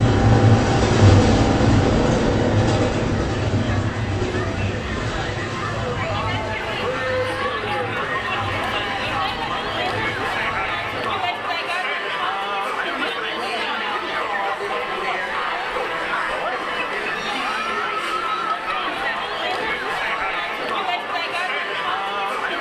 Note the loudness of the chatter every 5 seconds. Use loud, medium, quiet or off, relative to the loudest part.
medium, loud, loud, loud, loud.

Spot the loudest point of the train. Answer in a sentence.
The volume of the train peaks at 1 second.